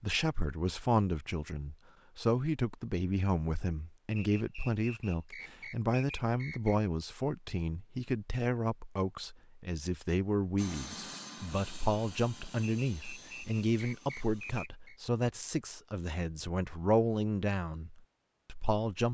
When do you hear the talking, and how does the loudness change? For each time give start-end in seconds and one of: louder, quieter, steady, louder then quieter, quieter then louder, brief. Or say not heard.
0.0-19.0 steady.